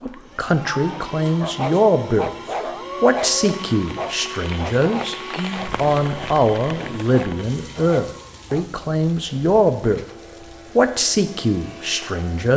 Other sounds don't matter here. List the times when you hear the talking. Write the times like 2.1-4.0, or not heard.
0.0-2.3, 3.0-5.2, 5.8-10.1, 10.8-12.5.